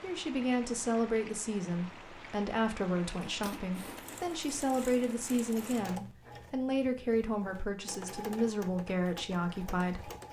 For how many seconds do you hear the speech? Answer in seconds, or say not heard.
10 s.